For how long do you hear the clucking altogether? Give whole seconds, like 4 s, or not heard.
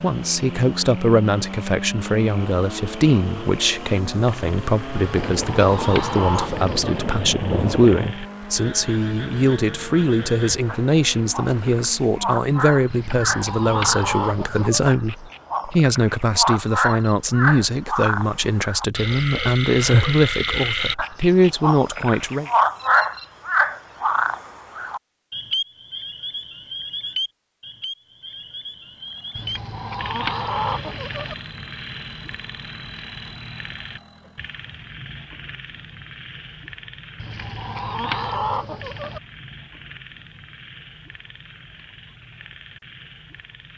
8 s.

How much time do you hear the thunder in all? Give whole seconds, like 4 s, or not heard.
3 s.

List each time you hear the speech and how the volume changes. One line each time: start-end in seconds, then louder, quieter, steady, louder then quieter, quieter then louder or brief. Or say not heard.
0.0-22.5 steady.